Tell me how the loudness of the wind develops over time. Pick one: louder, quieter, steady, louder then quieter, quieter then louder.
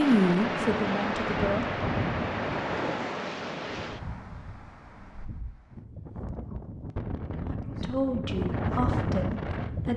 quieter then louder.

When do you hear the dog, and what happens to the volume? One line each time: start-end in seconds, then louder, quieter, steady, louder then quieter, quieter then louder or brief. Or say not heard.
not heard.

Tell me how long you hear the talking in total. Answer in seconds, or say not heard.
4 s.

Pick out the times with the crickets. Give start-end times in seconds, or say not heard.
not heard.